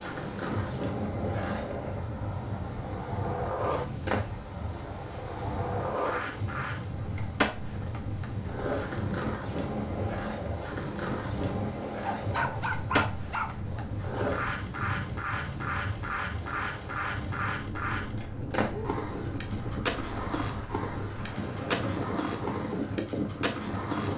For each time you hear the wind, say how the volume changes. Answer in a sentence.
You can hear the wind from 0.0 to 24.1 s, at a steady volume.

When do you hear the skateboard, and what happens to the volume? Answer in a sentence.
The skateboard can be heard from 0.0 to 24.1 s, at a steady volume.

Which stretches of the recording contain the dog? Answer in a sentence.
You can hear the dog from 12.0 to 14.3 s.